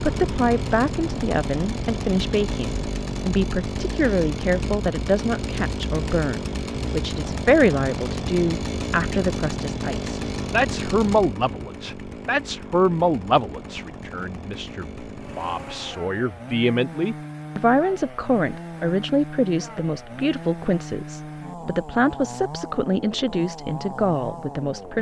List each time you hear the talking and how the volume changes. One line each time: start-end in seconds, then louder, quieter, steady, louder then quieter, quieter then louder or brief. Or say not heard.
0.0-24.9 steady.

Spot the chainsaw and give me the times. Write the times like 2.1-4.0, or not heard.
0.0-24.9.